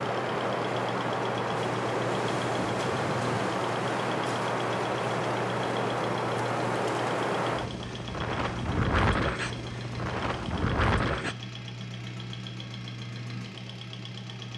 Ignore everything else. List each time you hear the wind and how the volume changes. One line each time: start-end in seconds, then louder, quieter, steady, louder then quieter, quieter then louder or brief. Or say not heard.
0.0-11.3 steady.